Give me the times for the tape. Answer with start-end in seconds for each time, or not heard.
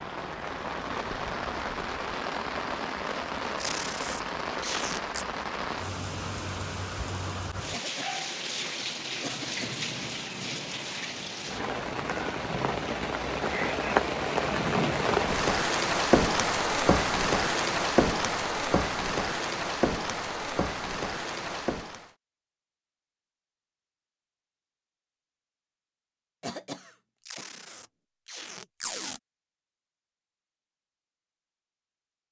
3.5-5.2, 27.2-29.2.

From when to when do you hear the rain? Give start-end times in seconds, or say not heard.
0.0-22.1.